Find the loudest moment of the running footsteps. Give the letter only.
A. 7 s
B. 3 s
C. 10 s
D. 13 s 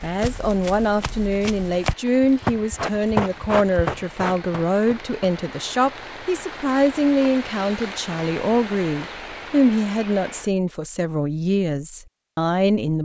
B.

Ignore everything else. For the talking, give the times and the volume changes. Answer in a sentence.
You can hear the talking from 0.0 to 13.0 s, at a steady volume.